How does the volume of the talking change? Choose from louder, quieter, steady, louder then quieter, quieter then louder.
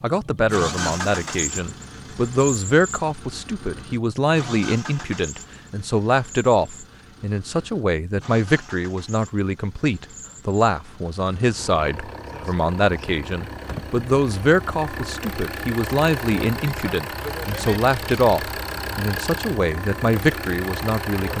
steady.